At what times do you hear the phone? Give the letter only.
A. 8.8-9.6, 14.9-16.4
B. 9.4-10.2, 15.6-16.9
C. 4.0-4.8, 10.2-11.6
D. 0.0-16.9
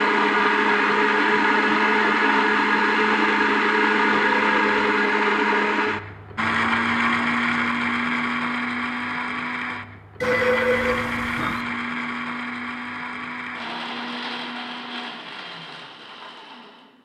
C.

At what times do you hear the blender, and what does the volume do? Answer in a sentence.
The blender can be heard from 0.0 to 16.9 s, getting quieter.